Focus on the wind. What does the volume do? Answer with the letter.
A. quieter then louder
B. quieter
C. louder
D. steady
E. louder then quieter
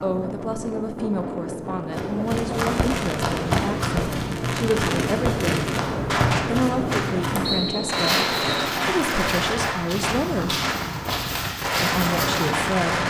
D.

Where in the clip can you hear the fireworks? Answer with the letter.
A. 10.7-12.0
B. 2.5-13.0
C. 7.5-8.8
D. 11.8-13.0
B.